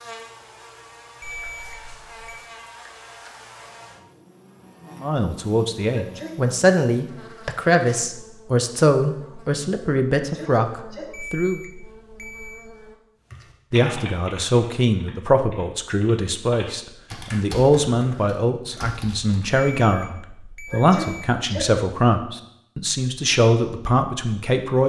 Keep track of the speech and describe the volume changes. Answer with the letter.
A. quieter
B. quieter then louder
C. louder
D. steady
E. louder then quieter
D.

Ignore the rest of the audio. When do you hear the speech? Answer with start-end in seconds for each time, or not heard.
5.0-11.6, 13.7-24.8.